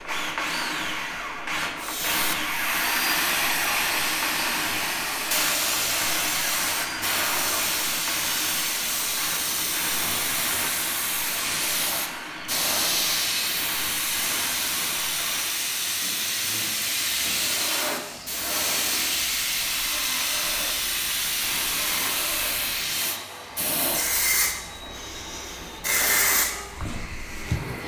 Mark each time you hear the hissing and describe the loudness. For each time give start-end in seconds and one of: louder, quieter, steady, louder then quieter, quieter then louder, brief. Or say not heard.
1.8-27.8 steady.